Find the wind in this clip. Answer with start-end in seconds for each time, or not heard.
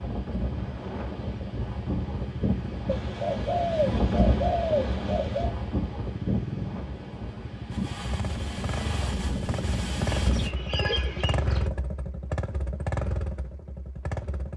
0.0-10.5.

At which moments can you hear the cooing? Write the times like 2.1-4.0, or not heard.
2.9-5.5, 10.2-11.7.